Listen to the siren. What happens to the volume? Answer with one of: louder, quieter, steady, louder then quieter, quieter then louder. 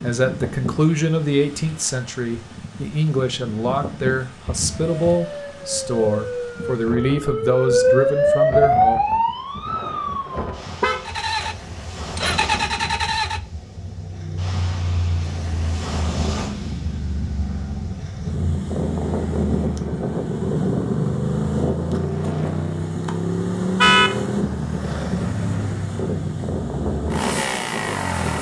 louder then quieter.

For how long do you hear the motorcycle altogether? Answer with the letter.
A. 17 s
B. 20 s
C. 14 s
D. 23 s
A.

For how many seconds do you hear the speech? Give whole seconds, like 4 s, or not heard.
9 s.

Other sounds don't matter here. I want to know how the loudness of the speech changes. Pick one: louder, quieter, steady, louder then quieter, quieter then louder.
steady.